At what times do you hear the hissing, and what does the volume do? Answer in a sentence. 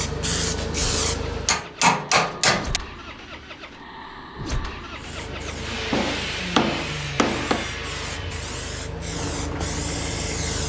The hissing can be heard briefly from 0.0 to 1.6 s; and from 5.0 to 10.6 s, getting louder.